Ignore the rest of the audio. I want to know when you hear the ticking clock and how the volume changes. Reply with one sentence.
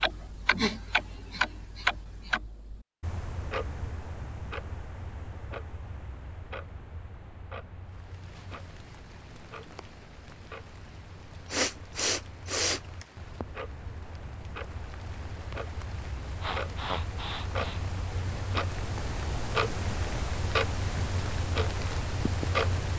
The ticking clock can be heard from 0.0 to 22.9 s, getting quieter then louder.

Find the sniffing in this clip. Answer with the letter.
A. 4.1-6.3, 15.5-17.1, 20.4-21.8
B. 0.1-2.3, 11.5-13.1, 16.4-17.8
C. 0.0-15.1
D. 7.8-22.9
B.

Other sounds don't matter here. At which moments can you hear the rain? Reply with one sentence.
The rain can be heard from 7.8 to 22.9 s.